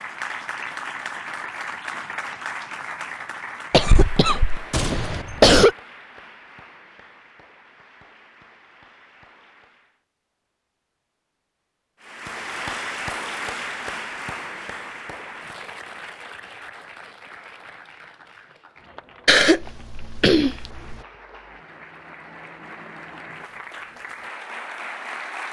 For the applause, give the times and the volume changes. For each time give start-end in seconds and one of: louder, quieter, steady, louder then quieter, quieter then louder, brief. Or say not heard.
0.0-10.1 quieter
12.0-25.4 quieter then louder.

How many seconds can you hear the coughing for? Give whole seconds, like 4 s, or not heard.
4 s.